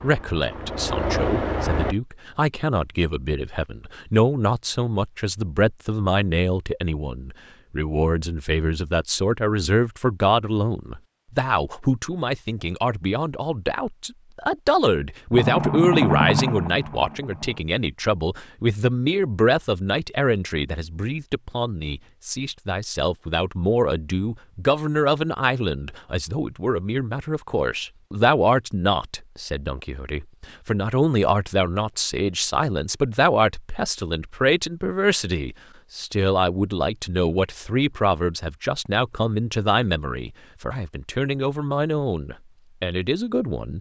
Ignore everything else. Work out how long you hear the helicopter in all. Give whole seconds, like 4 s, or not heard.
4 s.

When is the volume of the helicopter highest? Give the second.
16 s.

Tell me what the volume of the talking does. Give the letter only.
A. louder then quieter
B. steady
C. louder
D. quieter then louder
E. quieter
B.